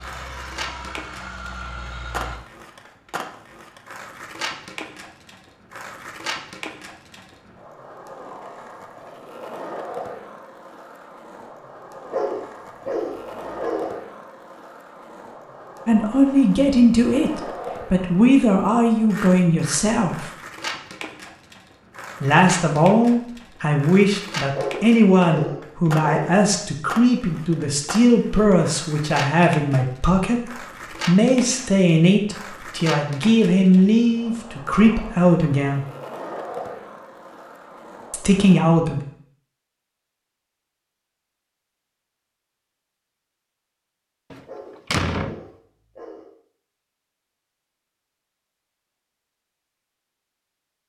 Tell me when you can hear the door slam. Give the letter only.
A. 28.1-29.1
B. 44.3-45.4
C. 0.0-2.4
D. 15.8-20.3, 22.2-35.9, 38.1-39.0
B.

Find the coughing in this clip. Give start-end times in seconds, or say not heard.
not heard.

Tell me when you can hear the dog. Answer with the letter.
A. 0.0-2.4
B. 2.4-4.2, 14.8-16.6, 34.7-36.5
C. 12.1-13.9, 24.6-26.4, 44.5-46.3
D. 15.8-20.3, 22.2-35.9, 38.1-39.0
C.